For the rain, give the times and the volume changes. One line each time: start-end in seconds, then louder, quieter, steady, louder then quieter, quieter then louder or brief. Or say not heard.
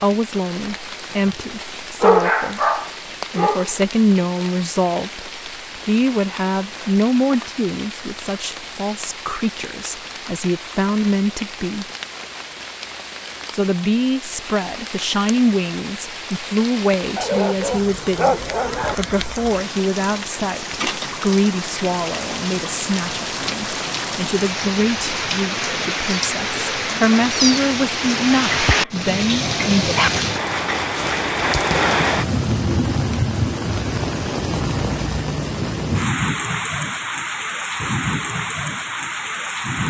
0.0-39.8 louder.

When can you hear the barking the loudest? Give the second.
2 s.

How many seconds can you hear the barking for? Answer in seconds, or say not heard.
5 s.